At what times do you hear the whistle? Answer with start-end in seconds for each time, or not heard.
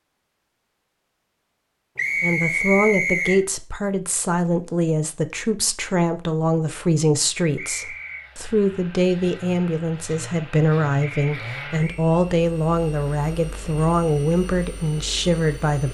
1.9-3.4, 7.5-8.3, 11.0-12.0.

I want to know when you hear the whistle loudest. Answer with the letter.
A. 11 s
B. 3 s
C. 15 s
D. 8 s
B.